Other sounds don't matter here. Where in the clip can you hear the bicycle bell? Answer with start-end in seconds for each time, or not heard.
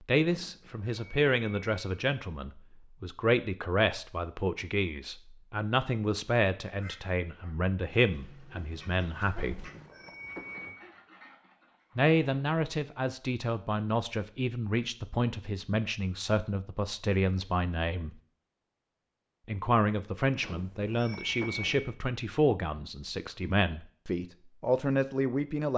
0.2-2.0, 9.3-10.8, 20.4-21.9.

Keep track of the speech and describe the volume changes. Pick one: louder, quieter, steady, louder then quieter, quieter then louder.
steady.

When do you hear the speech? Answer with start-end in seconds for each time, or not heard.
0.1-9.7, 11.9-18.1, 19.4-25.7.